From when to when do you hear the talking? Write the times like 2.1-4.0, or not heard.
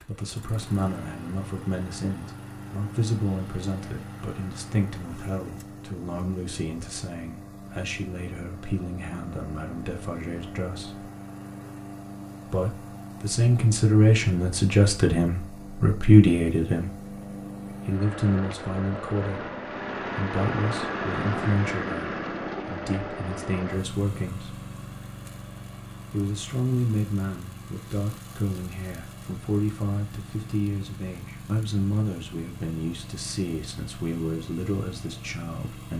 0.0-11.1, 12.4-24.6, 26.1-35.9.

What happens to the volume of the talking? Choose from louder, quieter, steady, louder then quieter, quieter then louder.
louder then quieter.